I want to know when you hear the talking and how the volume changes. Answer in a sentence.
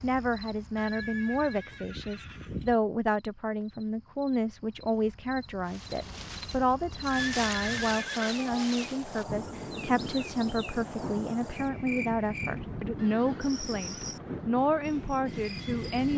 You can hear the talking from 0.0 to 16.1 s, at a steady volume.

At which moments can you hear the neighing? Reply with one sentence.
You can hear the neighing from 0.8 to 2.8 s, from 7.0 to 8.7 s and from 12.9 to 14.2 s.